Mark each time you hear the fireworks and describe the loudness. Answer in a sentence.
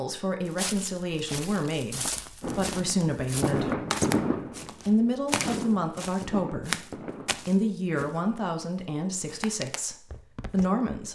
The fireworks can be heard from 2.4 to 8.2 s, getting quieter.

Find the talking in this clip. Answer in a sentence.
You can hear the talking from 0.0 to 3.8 s and from 4.8 to 11.0 s.